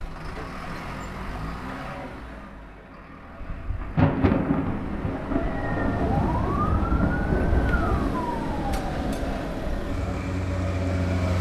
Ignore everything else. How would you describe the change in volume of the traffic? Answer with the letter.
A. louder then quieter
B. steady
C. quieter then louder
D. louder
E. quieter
C.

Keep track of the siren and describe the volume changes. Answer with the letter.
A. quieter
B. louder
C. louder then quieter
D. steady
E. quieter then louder
A.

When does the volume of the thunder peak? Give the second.
4 s.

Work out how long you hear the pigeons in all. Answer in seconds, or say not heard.
2 s.